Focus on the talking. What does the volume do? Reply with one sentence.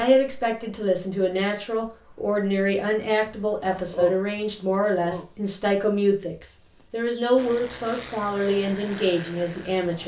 The volume of the talking stays about the same.